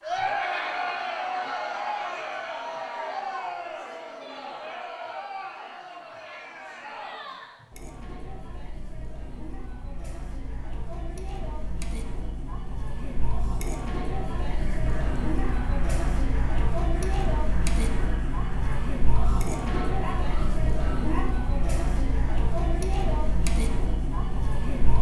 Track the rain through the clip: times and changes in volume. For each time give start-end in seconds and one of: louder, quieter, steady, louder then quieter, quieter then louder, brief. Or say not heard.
not heard.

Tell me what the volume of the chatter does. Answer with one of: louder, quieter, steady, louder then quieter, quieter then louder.
quieter then louder.